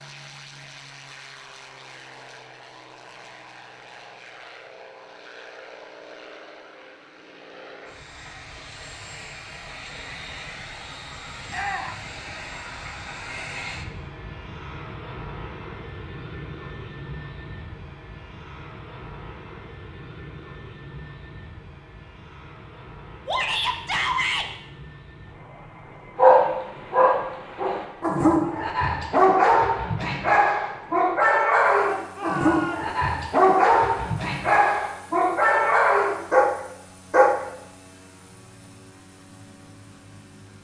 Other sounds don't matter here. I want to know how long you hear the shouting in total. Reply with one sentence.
The shouting can be heard for 3 seconds in total.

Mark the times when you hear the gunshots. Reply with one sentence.
You can't hear the gunshots here.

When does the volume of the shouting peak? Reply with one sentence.
The loudest moment of the shouting is at 24 seconds.